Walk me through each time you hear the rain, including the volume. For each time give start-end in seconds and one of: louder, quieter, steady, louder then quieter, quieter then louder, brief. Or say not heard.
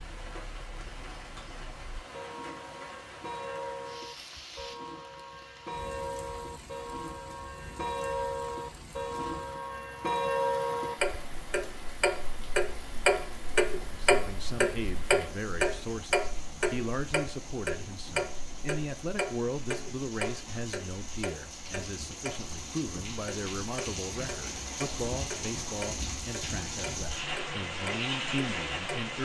0.0-29.2 louder.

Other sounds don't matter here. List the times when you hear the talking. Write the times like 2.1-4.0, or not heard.
13.9-29.2.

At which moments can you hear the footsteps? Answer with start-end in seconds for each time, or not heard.
not heard.